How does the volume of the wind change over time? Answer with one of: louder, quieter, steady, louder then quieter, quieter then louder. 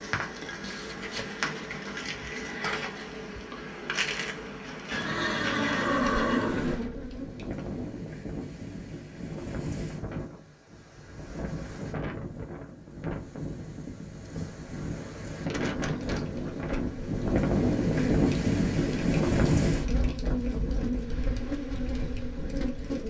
louder then quieter.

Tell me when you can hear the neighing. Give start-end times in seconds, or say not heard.
4.9-6.8.